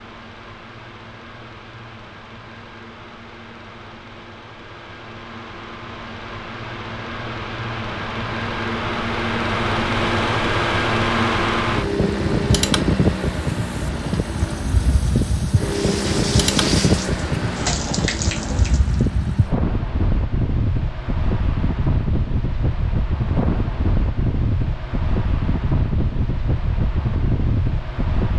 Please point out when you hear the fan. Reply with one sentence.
You can hear the fan from 0.0 to 28.3 s.